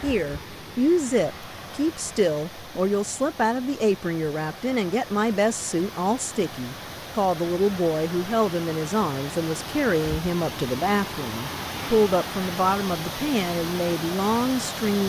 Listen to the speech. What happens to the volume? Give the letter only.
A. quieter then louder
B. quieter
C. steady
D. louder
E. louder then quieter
C.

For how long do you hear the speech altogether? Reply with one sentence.
The speech can be heard for 15 seconds in total.